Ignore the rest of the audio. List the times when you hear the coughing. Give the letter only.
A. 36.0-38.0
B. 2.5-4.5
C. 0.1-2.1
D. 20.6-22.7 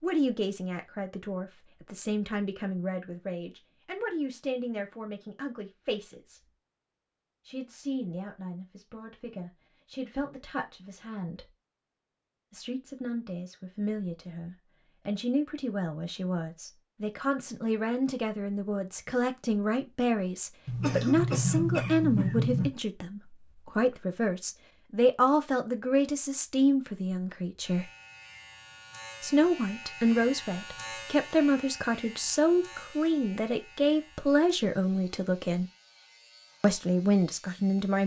D.